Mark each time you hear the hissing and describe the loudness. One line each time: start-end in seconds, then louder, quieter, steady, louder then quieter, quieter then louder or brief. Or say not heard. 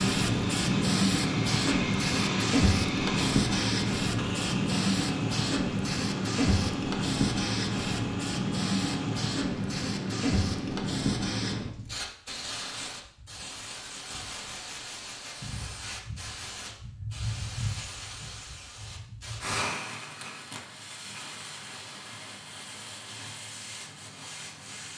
0.0-24.9 quieter.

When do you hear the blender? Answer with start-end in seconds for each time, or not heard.
0.1-9.2.